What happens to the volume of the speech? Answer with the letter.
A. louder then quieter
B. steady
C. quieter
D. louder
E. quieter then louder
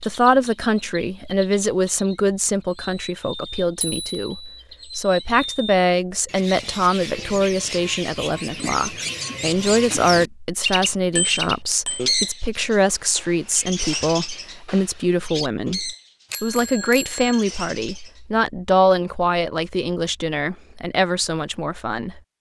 B.